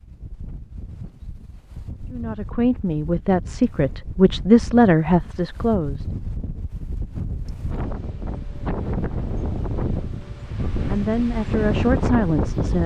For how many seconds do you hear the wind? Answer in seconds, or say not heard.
13 s.